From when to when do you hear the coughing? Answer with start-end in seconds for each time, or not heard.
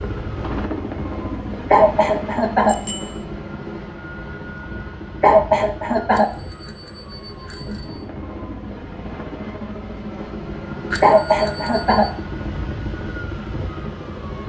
1.7-2.8, 5.2-6.3, 11.0-12.1.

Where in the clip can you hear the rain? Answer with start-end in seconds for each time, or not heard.
not heard.